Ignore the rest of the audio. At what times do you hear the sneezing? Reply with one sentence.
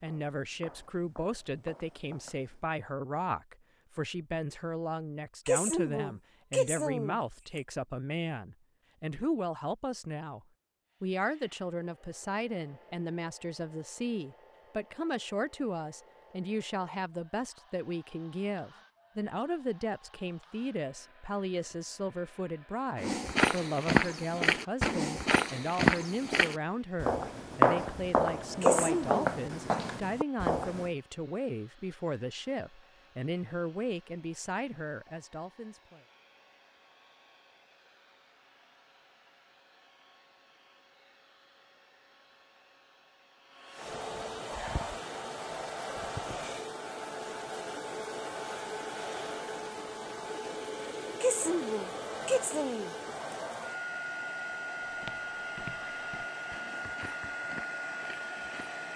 You can hear the sneezing from 5.5 to 7.2 s, from 28.6 to 29.2 s and from 51.2 to 52.9 s.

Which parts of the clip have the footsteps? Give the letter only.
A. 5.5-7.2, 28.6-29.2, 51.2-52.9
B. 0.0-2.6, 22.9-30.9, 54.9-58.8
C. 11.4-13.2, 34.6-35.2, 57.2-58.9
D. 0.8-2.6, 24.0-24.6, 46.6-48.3
B.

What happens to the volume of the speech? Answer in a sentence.
The volume of the speech stays about the same.